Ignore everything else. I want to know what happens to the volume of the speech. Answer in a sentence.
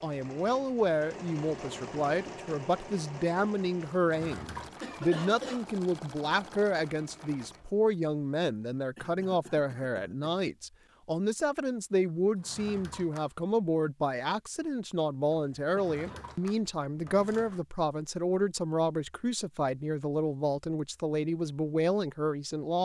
The volume of the speech stays about the same.